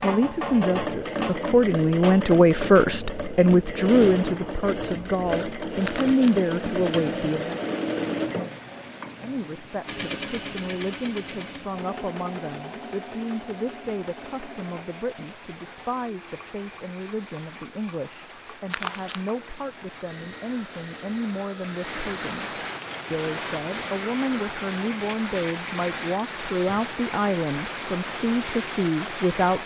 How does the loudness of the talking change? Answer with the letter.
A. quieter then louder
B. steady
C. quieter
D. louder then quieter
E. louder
A.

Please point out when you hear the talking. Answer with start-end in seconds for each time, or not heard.
0.0-7.6, 9.2-29.6.